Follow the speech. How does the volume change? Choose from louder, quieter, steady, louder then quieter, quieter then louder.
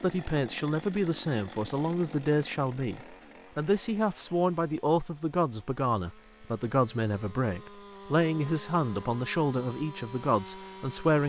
steady.